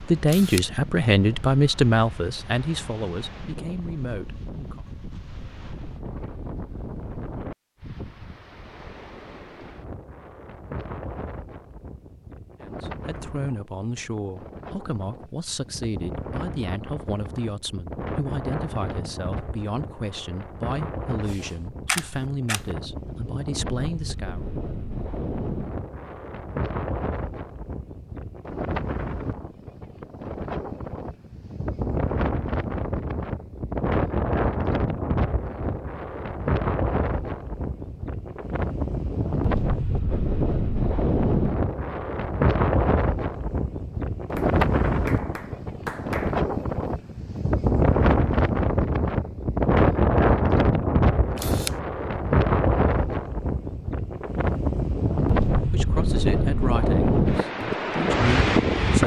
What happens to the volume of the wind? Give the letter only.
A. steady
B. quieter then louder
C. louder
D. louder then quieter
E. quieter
C.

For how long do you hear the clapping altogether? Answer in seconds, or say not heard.
2 s.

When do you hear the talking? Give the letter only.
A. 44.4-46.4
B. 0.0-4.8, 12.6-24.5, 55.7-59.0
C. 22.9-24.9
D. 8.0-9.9
B.